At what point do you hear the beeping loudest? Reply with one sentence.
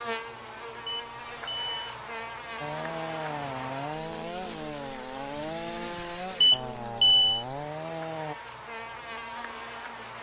The volume of the beeping peaks at 7 seconds.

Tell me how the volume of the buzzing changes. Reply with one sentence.
The volume of the buzzing goes down, then up.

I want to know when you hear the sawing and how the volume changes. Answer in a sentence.
You can hear the sawing from 2.5 to 8.3 s, at a steady volume.